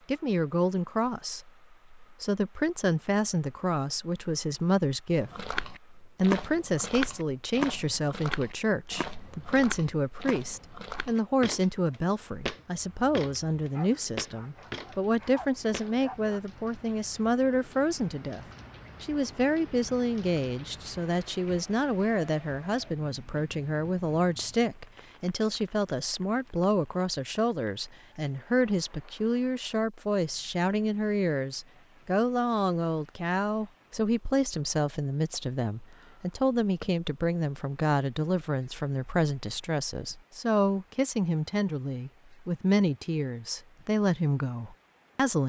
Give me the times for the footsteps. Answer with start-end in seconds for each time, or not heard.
5.2-15.9.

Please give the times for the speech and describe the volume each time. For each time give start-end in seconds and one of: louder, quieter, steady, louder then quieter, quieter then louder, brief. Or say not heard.
0.1-45.4 steady.